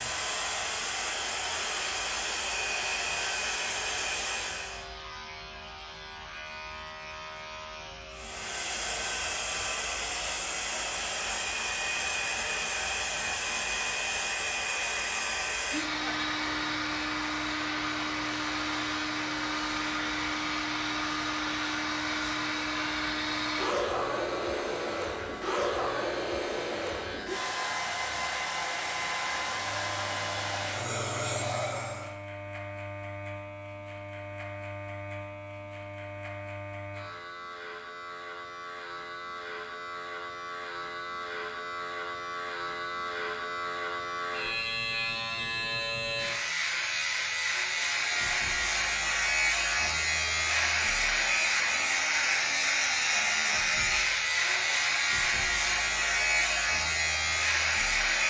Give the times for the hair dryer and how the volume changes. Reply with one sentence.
The hair dryer can be heard from 0.0 to 4.9 s, at a steady volume; from 8.1 to 32.1 s, at a steady volume; and from 47.7 to 58.2 s, at a steady volume.